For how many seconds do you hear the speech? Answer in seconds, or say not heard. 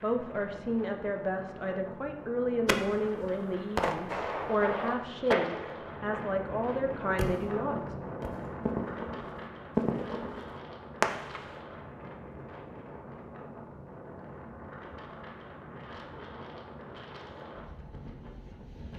8 s.